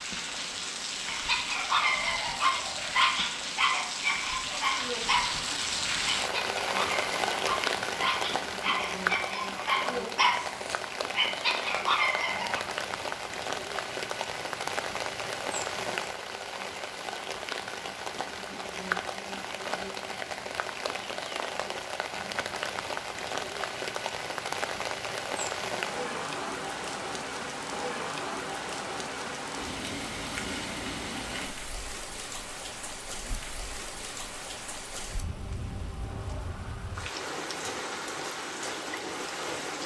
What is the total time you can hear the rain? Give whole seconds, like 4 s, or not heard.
40 s.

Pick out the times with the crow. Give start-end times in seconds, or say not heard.
not heard.